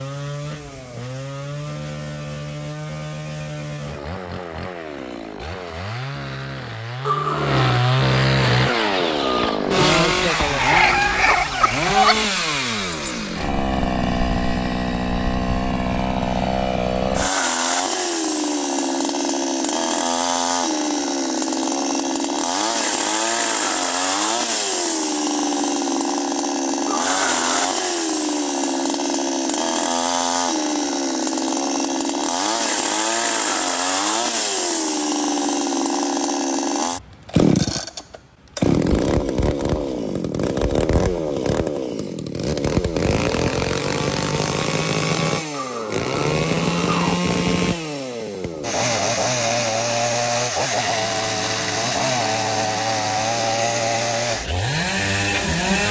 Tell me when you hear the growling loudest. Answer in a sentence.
The loudest moment of the growling is at 7 seconds.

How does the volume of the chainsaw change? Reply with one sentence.
The loudness of the chainsaw stays about the same.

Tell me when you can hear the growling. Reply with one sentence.
You can hear the growling from 7.0 to 7.8 s, from 26.9 to 27.8 s and from 45.5 to 47.2 s.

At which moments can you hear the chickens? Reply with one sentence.
The chickens can be heard from 8.4 to 12.3 s.